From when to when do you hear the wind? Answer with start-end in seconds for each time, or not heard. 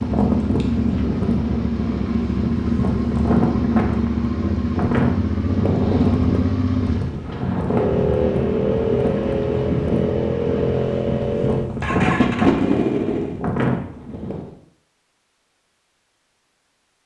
0.0-14.5.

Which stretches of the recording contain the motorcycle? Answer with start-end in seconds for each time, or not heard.
0.0-13.4.